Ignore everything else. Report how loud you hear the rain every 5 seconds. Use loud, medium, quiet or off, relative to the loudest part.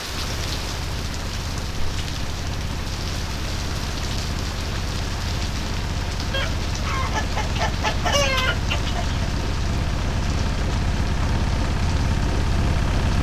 loud, loud, medium.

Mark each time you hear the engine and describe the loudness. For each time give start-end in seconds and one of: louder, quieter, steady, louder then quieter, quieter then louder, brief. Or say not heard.
0.0-13.1 louder.